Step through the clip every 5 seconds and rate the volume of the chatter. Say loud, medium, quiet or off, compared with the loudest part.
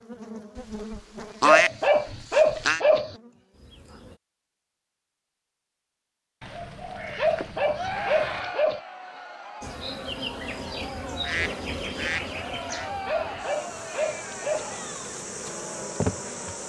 off, loud, loud, medium.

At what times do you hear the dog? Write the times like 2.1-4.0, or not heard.
1.4-3.1, 7.2-8.8, 13.1-14.8.